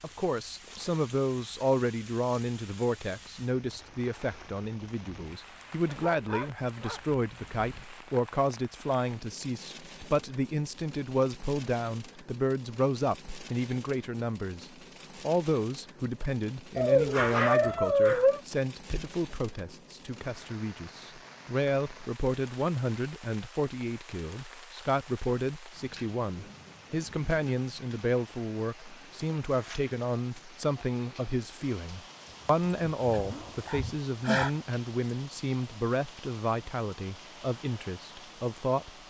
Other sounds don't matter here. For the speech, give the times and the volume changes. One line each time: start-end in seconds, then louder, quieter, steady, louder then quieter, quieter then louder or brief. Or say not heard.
0.0-38.9 steady.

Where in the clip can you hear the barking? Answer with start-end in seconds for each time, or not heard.
5.8-7.8, 16.8-18.4, 32.6-34.5.